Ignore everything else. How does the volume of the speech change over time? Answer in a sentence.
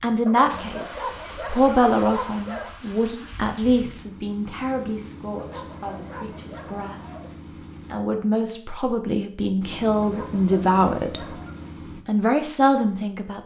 The volume of the speech goes down, then up.